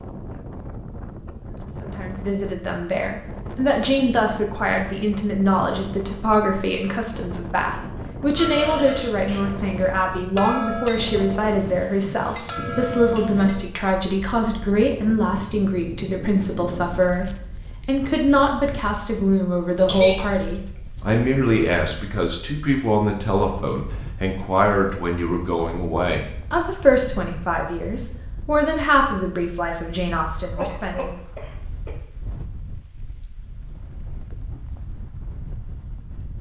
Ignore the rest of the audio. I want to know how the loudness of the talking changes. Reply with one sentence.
The loudness of the talking stays about the same.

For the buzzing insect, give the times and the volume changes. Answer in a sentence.
You can't hear the buzzing insect here.